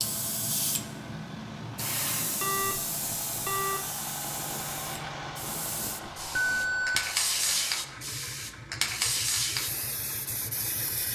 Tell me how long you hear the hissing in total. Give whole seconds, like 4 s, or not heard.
11 s.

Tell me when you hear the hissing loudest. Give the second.
7 s.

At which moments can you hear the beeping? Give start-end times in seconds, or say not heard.
2.4-3.9, 6.2-7.0.